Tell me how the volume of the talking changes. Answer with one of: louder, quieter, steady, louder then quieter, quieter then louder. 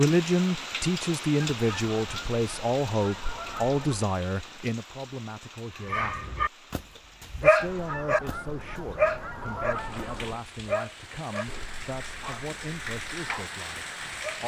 quieter.